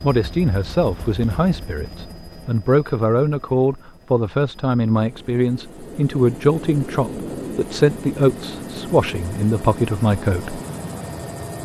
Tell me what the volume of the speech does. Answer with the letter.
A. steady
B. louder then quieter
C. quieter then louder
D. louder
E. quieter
A.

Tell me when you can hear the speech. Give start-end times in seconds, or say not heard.
0.0-10.6.